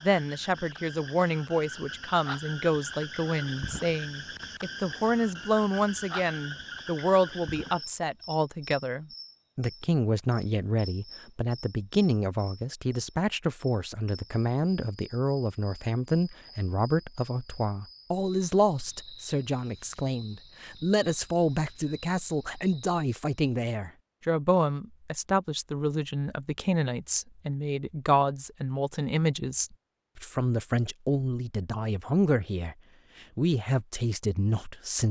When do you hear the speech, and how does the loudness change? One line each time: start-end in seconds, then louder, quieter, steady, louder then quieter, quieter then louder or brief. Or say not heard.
0.0-35.0 steady.